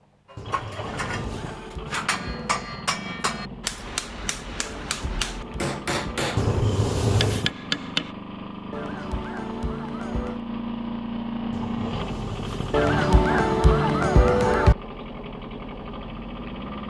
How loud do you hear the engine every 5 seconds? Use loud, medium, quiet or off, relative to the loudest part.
medium, medium, loud, medium.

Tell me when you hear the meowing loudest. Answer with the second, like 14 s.
7 s.